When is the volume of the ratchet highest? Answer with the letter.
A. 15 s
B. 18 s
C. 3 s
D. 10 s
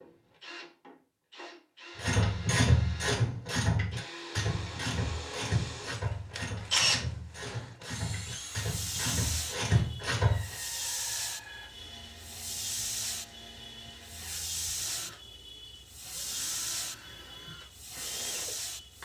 C.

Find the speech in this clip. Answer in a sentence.
The speech can't be heard in this clip.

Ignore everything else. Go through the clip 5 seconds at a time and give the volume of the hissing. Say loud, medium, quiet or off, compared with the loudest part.
off, loud, loud, loud.